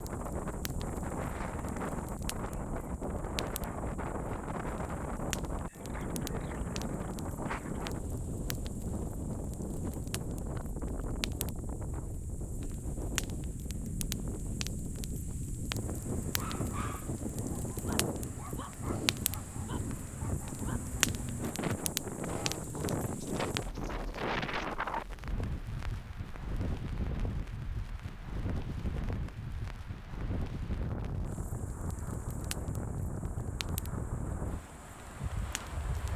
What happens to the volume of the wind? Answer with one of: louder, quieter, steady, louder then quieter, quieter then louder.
steady.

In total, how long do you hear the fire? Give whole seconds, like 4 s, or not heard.
36 s.